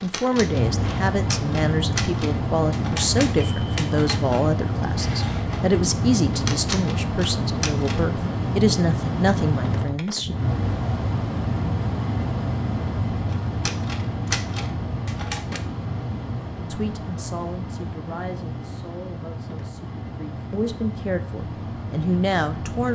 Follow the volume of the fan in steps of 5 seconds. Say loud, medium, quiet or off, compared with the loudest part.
loud, loud, loud, medium, medium.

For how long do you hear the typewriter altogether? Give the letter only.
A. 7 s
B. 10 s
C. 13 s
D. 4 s
B.